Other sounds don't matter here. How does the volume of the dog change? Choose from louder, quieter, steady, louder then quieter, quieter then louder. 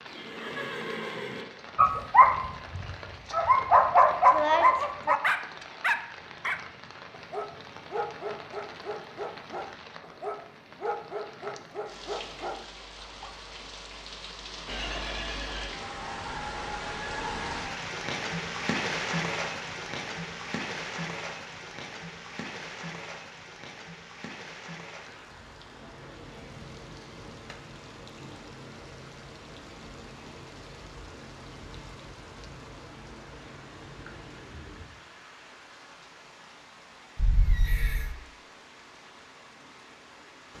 quieter.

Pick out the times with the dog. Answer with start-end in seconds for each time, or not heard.
1.8-13.6.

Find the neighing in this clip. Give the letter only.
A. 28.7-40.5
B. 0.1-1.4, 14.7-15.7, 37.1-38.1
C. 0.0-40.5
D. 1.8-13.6
B.